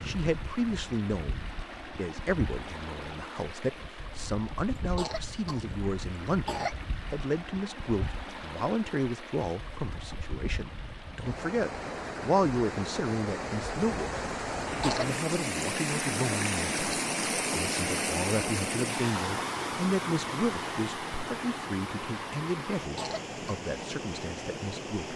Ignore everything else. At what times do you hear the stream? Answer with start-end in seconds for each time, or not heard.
0.0-25.1.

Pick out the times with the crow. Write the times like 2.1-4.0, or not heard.
not heard.